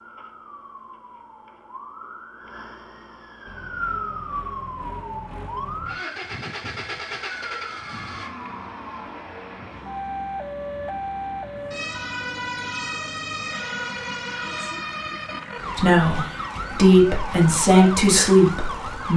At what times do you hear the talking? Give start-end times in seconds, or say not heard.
15.8-19.1.